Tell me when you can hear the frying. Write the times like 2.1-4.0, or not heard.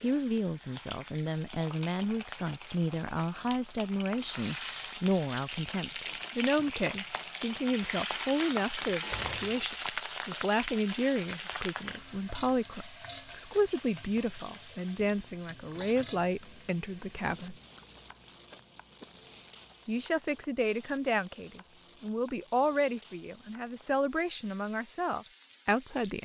0.0-26.1.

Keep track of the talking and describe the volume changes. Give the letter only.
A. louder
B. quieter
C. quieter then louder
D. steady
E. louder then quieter
D.